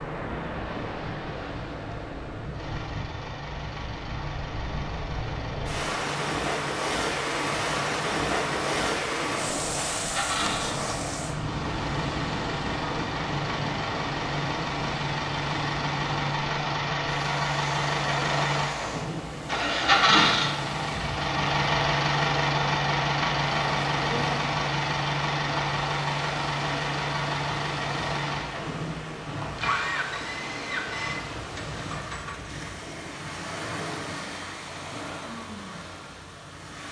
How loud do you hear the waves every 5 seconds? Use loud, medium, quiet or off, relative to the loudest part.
medium, loud, loud, medium, medium, medium, medium, medium.